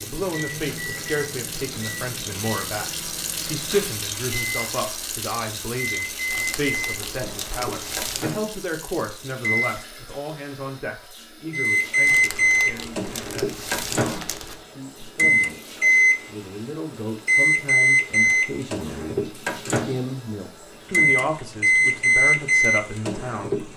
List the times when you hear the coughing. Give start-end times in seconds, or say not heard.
not heard.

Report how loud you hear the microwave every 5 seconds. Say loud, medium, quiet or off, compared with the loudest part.
quiet, medium, loud, loud, loud.